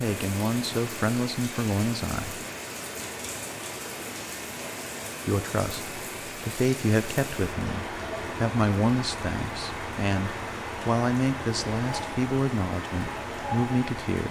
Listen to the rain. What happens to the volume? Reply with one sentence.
The volume of the rain stays about the same.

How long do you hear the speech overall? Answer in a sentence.
You can hear the speech for 11 seconds altogether.